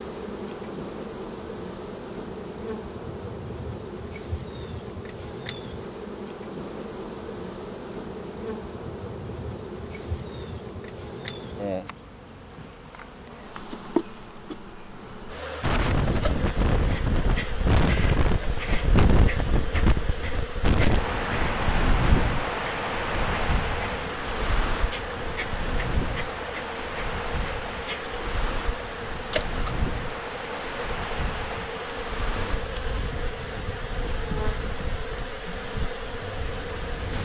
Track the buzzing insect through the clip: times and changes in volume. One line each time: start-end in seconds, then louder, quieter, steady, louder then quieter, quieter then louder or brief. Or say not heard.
0.0-37.2 steady.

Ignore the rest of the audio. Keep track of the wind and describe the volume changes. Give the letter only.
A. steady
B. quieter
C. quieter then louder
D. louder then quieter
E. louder
B.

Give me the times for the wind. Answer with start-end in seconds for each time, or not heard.
15.6-37.2.